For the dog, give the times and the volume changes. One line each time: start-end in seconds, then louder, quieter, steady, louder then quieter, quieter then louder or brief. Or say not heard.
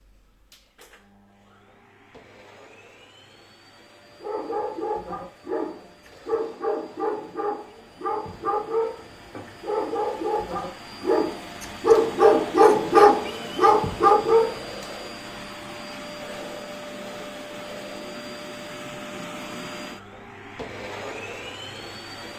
4.2-14.6 louder.